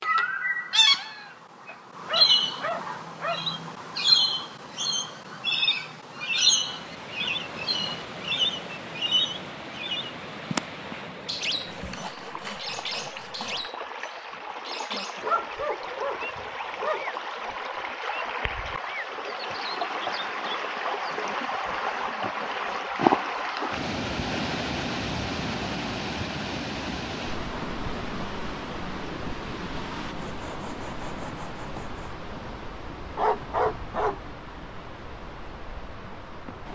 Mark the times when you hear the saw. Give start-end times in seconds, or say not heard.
11.7-13.7, 30.1-32.1.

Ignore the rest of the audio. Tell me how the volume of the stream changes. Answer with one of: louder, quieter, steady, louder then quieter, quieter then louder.
louder then quieter.